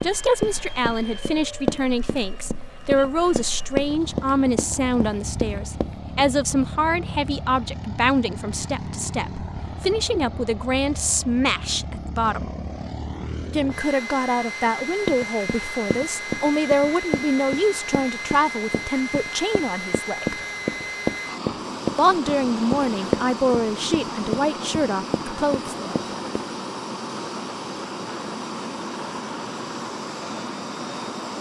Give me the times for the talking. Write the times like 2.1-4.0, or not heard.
0.0-12.5, 13.5-20.4, 21.9-25.9.